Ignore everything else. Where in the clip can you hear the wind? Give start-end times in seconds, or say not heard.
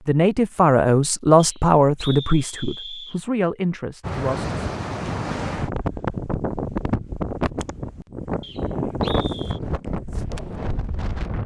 4.0-11.4.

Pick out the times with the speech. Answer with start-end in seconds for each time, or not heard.
0.1-4.5.